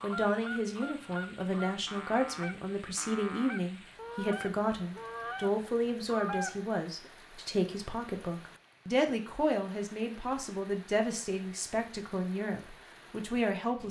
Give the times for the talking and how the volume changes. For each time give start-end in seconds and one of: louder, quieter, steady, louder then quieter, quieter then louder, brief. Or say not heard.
0.0-13.8 steady.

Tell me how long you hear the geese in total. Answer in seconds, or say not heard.
7 s.